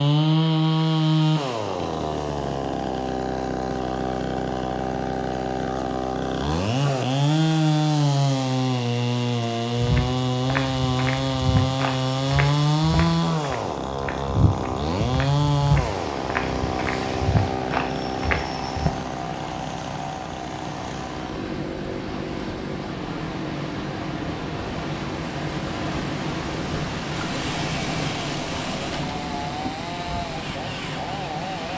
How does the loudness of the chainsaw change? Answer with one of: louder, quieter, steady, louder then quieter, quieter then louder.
quieter.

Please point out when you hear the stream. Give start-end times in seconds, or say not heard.
15.8-31.7.